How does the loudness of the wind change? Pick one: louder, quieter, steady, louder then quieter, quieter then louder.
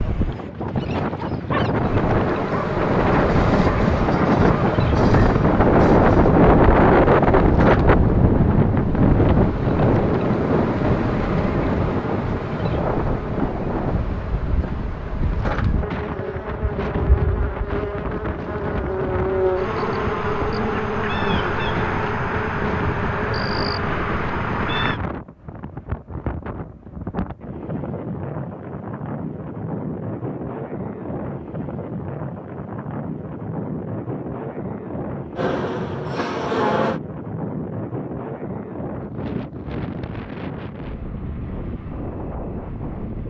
quieter.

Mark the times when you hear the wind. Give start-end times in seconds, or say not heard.
0.0-43.2.